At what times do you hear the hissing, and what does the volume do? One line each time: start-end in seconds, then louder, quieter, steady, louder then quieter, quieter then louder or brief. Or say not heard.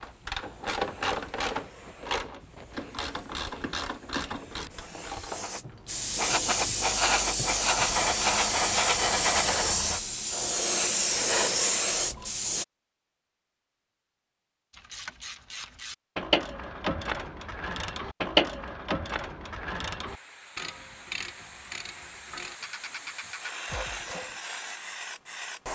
0.0-12.7 louder
20.1-25.7 louder.